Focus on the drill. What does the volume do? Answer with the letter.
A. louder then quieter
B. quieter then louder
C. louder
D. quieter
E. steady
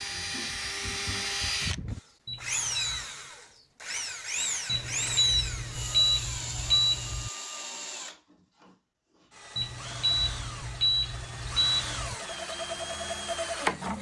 B.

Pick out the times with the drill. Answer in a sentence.
The drill can be heard from 0.0 to 13.9 s.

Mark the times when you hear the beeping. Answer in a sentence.
You can hear the beeping from 2.2 to 3.0 s, from 4.7 to 7.3 s and from 9.6 to 12.2 s.